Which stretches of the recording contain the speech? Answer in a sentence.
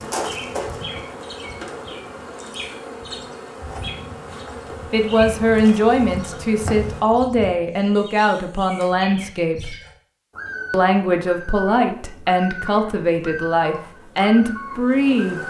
The speech can be heard from 4.9 to 9.8 s and from 10.7 to 15.4 s.